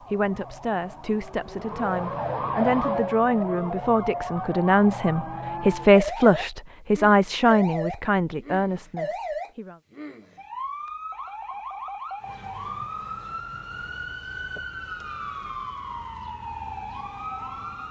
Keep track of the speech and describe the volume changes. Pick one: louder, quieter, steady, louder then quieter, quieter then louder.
louder then quieter.